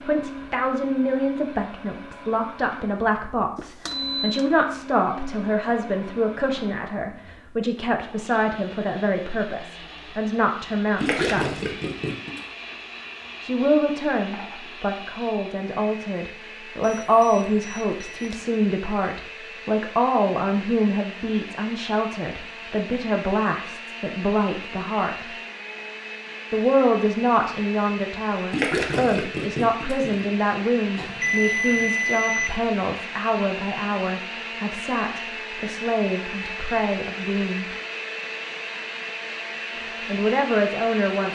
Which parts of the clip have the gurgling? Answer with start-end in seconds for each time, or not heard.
11.0-12.4, 28.5-30.2.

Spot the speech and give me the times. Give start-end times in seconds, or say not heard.
0.0-11.7, 13.4-25.2, 26.5-37.6, 40.0-41.3.